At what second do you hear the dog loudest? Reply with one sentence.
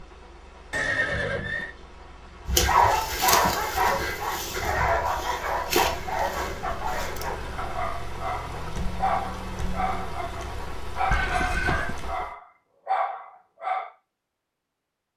The loudest moment of the dog is at 3 seconds.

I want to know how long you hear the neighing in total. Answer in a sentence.
The neighing can be heard for 4 seconds in total.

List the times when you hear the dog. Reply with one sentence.
You can hear the dog from 2.5 to 13.9 s.